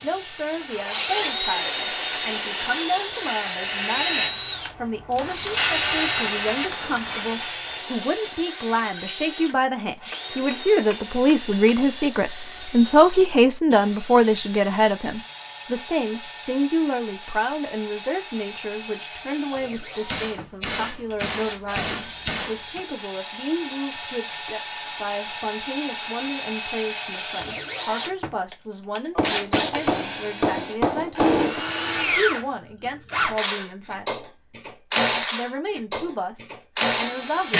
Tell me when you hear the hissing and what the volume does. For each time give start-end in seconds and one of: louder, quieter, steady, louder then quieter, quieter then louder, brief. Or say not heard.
0.0-7.8 louder.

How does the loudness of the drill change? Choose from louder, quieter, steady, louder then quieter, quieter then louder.
quieter then louder.